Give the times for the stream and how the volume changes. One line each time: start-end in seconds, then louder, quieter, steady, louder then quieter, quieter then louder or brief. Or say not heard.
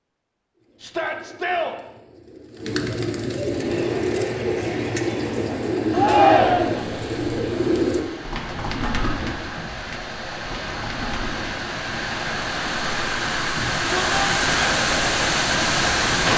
3.5-16.3 louder.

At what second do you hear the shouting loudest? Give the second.
6 s.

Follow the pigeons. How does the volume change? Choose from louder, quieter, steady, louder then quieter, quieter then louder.
louder then quieter.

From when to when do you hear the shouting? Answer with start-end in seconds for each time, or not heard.
0.8-1.8, 5.9-6.8, 13.5-14.2.